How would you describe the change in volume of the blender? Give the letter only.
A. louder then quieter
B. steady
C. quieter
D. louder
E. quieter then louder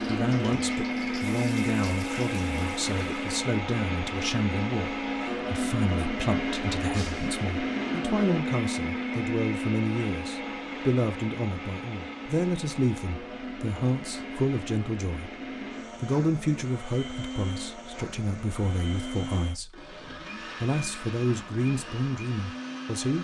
C.